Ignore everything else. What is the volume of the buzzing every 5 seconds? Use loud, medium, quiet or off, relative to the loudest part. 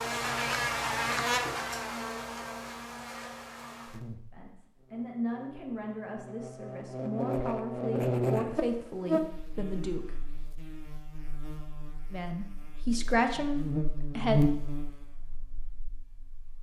loud, loud, loud, quiet.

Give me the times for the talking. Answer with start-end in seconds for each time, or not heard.
4.3-10.1, 12.1-14.4.